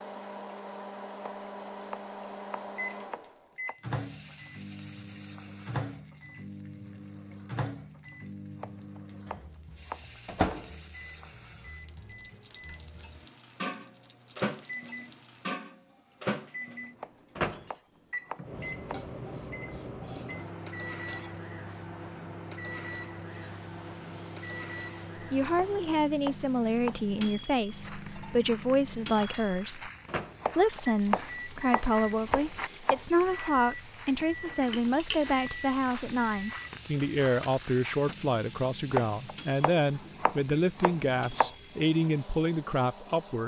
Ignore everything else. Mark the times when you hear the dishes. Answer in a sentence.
You can hear the dishes from 34.6 to 35.2 s.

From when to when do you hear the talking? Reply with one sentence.
You can hear the talking from 25.3 to 29.9 s and from 30.6 to 43.4 s.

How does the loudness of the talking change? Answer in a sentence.
The volume of the talking stays about the same.